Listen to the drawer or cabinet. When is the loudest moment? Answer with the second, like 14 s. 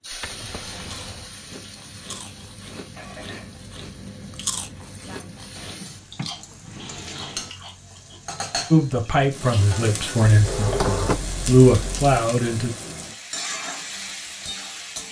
11 s.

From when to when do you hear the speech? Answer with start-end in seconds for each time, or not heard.
8.7-12.7.